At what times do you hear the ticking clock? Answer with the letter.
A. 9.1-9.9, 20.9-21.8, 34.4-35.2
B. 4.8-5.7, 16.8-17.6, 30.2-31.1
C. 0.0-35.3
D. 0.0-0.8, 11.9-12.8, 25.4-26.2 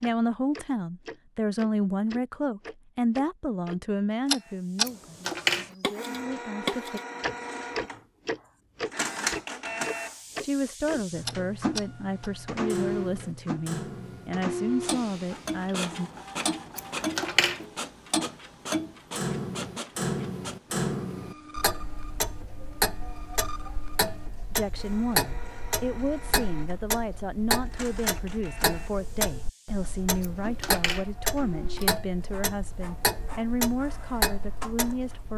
C.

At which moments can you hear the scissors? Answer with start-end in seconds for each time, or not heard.
4.8-5.7, 16.8-17.6, 30.2-31.1.